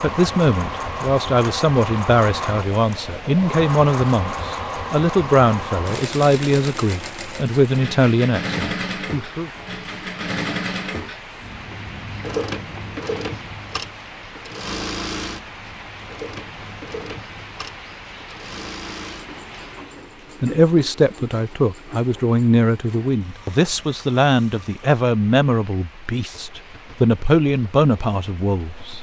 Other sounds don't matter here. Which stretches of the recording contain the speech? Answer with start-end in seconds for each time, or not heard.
0.0-9.5, 20.4-28.9.